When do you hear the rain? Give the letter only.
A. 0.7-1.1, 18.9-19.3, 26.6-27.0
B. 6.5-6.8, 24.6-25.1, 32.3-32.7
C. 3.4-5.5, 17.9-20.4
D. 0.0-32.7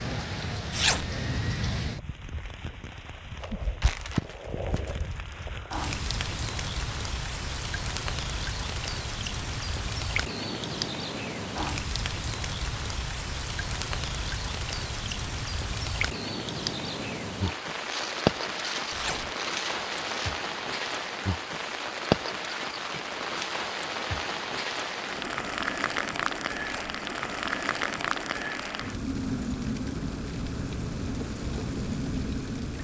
D.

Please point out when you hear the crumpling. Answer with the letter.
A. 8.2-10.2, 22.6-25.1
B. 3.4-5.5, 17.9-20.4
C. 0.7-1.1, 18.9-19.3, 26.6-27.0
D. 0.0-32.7
B.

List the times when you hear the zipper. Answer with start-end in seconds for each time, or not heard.
0.7-1.1, 18.9-19.3, 26.6-27.0.